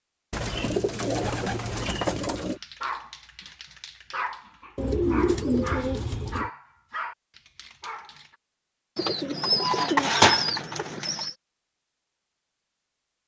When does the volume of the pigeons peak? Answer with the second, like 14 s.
10 s.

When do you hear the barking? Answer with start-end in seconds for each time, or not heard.
2.3-8.3.